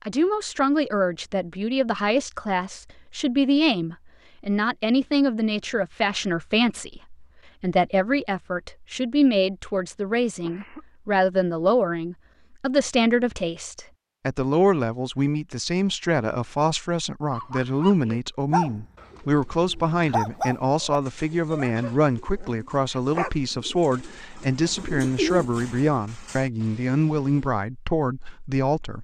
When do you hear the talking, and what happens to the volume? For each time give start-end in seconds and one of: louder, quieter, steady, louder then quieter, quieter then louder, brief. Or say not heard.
0.1-28.9 steady.